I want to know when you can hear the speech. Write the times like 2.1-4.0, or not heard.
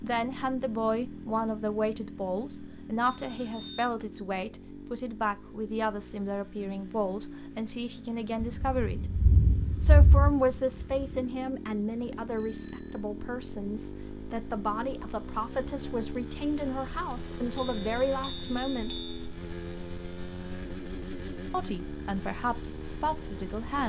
0.0-9.0, 9.8-18.9, 21.5-23.8.